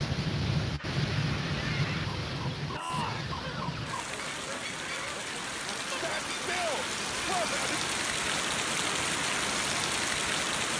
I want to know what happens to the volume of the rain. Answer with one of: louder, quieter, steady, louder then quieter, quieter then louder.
quieter then louder.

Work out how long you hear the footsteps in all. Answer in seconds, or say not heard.
not heard.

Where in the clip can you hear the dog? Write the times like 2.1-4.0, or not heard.
not heard.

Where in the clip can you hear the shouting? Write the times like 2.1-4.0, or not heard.
2.7-3.4, 5.8-7.8.